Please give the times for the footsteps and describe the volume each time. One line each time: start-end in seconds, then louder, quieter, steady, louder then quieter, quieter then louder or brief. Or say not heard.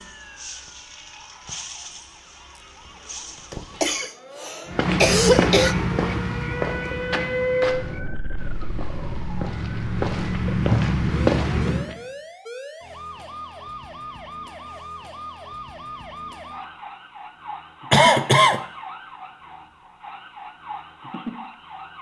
4.7-11.9 quieter then louder.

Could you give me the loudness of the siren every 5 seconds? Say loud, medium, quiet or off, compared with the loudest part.
medium, loud, medium, medium, medium.